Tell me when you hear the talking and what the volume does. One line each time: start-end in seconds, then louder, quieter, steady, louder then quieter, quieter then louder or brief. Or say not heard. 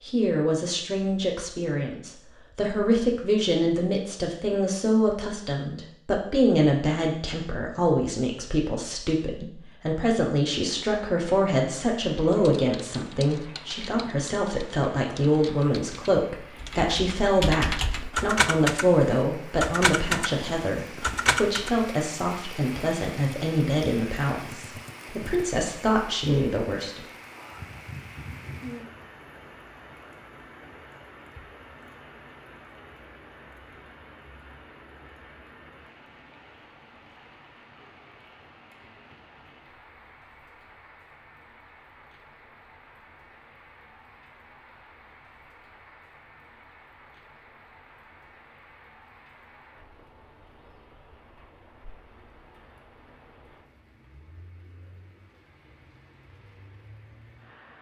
0.0-27.1 steady.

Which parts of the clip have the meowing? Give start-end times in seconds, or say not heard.
not heard.